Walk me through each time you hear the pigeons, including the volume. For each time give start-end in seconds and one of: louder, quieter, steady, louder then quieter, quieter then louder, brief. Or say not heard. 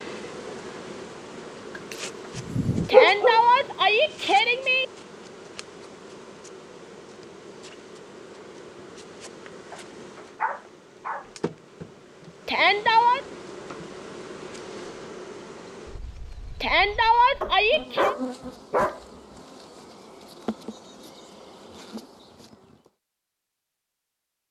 not heard.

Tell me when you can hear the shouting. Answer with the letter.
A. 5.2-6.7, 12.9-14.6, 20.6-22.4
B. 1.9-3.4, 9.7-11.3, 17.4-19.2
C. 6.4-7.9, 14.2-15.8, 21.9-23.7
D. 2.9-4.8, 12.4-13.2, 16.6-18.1
D.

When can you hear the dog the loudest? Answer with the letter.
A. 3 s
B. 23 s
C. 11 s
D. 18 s
A.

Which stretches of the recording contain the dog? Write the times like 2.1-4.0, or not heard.
1.9-3.4, 9.7-11.3, 17.4-19.2.